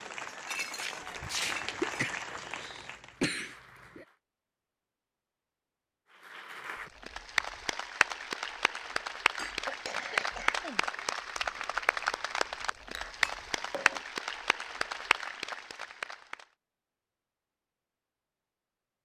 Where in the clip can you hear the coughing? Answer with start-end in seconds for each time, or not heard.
1.4-4.0, 9.7-10.8.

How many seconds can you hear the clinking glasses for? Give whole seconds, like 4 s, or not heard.
4 s.